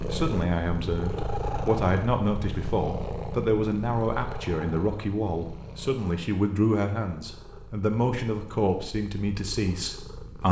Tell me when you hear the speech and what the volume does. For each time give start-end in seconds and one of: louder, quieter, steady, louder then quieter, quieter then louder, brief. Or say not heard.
0.0-10.4 steady.